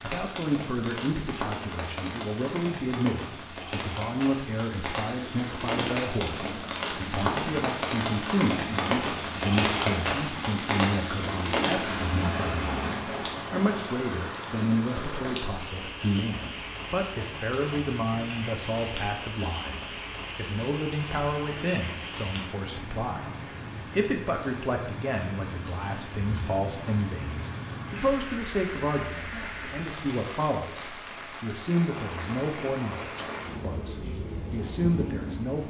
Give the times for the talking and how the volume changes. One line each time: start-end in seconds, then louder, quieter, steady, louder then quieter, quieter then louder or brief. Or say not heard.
0.0-35.6 steady.